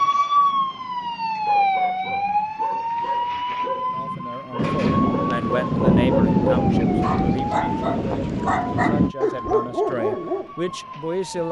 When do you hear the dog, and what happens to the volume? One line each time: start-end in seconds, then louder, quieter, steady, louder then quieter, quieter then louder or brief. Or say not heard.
0.3-10.5 louder.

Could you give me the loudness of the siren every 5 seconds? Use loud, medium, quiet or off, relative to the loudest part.
loud, medium, quiet.